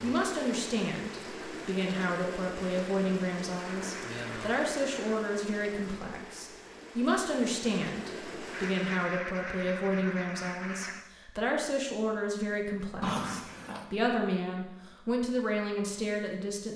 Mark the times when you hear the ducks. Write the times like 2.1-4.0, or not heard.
3.6-5.2, 8.5-11.1.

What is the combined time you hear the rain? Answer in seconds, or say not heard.
9 s.